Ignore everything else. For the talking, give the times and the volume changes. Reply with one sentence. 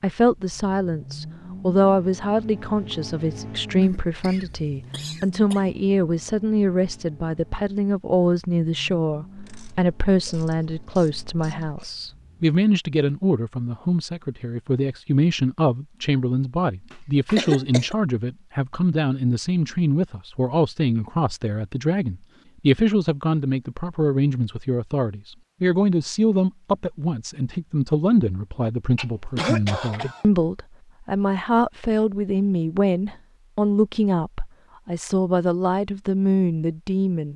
You can hear the talking from 0.0 to 37.3 s, at a steady volume.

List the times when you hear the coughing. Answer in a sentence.
You can hear the coughing from 3.8 to 5.7 s, from 16.9 to 17.9 s and from 28.9 to 30.2 s.